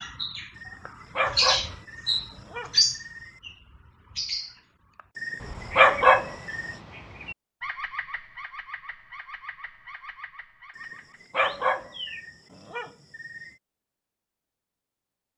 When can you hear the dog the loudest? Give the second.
6 s.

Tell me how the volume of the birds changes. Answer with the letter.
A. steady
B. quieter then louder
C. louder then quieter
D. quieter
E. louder
D.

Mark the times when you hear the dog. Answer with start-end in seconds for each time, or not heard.
0.6-3.3, 5.2-6.8, 10.8-13.5.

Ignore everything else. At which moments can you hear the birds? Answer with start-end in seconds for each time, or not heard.
0.0-12.2.